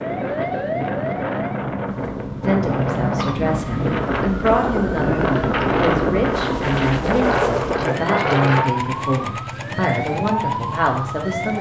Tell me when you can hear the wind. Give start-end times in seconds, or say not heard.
0.0-8.7.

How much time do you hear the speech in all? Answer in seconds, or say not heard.
9 s.